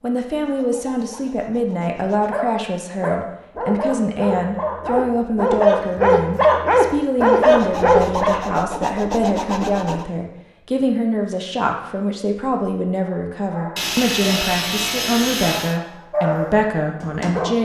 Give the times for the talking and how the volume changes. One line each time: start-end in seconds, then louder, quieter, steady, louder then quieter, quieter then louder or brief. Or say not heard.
0.0-17.6 steady.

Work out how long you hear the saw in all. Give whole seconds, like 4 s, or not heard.
7 s.